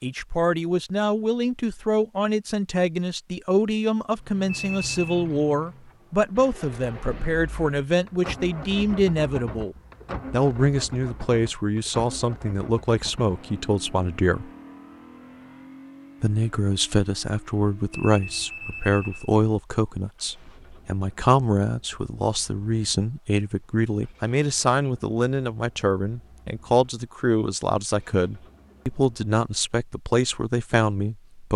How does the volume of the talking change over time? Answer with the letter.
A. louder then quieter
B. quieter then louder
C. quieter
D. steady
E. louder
D.